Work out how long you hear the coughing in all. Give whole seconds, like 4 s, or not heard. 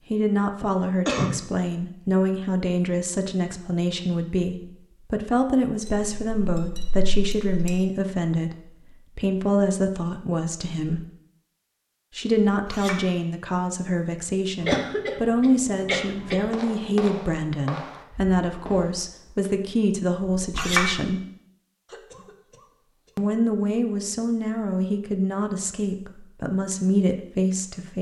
4 s.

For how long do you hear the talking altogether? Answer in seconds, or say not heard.
25 s.